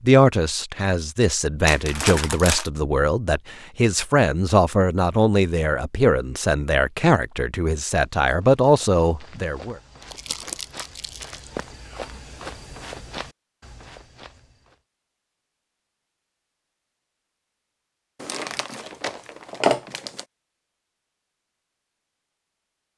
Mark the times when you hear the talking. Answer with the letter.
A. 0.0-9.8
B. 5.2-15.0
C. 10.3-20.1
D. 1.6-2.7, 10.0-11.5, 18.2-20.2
A.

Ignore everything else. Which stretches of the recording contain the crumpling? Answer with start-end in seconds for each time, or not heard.
1.6-2.7, 10.0-11.5, 18.2-20.2.